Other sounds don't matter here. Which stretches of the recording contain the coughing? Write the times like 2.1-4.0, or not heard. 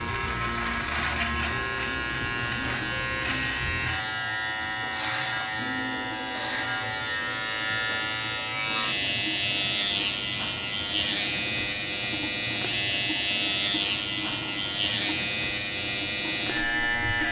not heard.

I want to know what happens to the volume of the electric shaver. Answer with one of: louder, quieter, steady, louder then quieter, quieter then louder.
steady.